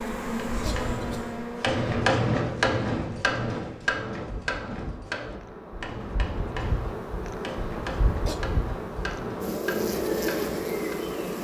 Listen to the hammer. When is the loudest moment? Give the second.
2 s.